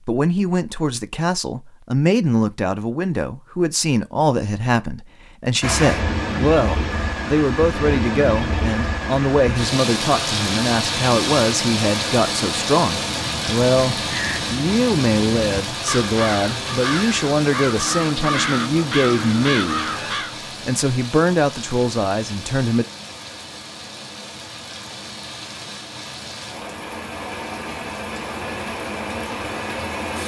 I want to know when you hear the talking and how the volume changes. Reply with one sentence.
The talking can be heard from 0.1 to 19.8 s, at a steady volume; and briefly from 20.6 to 22.9 s.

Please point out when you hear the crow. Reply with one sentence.
You can hear the crow from 13.0 to 20.4 s.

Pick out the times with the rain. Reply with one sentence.
The rain can be heard from 5.6 to 30.2 s.